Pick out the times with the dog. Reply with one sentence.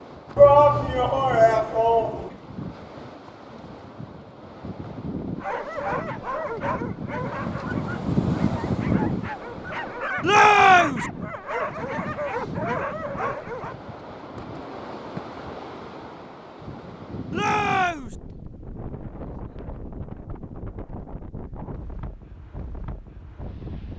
The dog can be heard from 5.4 to 13.8 s.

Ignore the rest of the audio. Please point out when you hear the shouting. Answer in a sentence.
The shouting can be heard from 0.3 to 2.3 s, from 10.2 to 11.1 s and from 17.3 to 18.1 s.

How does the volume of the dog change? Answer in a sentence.
The loudness of the dog goes down, then up.